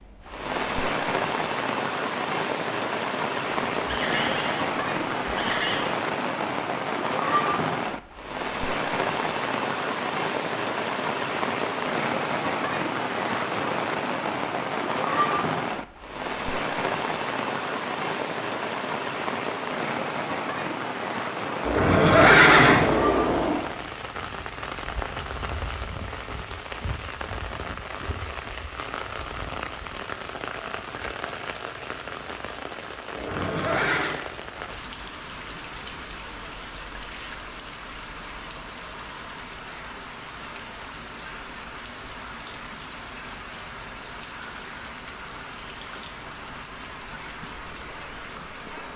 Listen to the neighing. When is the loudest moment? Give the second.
22 s.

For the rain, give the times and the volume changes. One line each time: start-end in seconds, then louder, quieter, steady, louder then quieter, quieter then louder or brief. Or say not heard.
0.0-48.9 quieter.